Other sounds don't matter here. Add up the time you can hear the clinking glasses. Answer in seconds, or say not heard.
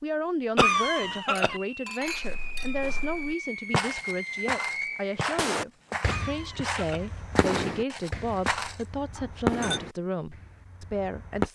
2 s.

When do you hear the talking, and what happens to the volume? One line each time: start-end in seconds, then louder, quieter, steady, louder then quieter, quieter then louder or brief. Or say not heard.
0.0-11.5 steady.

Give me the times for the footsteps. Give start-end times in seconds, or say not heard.
2.0-8.8.